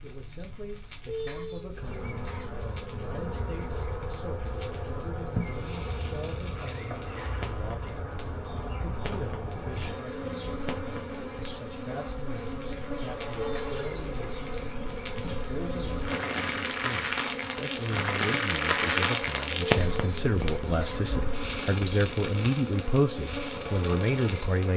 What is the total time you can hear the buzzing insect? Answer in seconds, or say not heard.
23 s.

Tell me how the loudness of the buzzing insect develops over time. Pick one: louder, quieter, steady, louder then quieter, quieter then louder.
steady.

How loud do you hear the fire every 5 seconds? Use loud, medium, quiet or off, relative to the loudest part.
quiet, quiet, quiet, loud, medium.